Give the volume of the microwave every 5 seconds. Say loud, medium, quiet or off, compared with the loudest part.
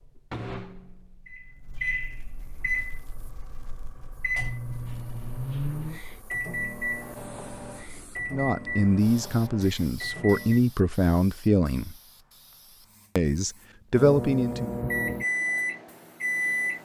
medium, medium, loud, loud.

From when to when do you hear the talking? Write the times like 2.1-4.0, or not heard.
8.3-11.9, 13.2-14.7.